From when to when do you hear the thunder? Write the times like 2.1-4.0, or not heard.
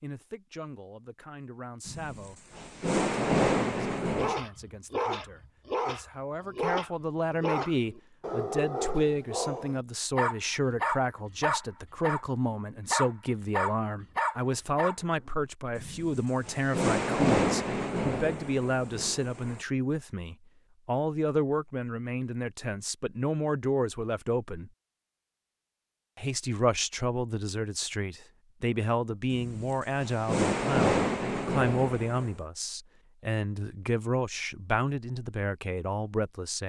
1.9-4.3, 15.8-19.6, 29.3-32.3.